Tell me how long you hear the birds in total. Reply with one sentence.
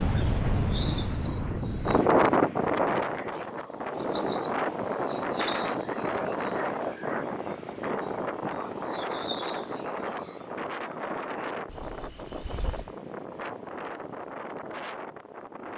The birds can be heard for 13 seconds in total.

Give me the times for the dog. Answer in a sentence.
The dog can't be heard in this clip.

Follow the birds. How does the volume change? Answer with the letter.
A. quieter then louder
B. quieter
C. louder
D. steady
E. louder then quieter
E.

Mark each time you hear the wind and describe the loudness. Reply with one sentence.
You can hear the wind from 0.0 to 15.7 s, getting quieter.